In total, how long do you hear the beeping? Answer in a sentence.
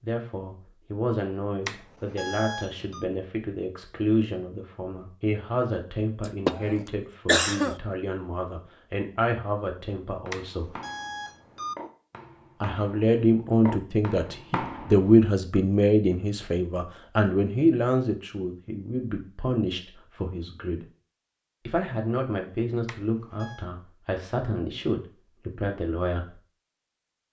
You can hear the beeping for 4 seconds altogether.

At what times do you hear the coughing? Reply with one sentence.
The coughing can be heard from 6.2 to 7.8 s.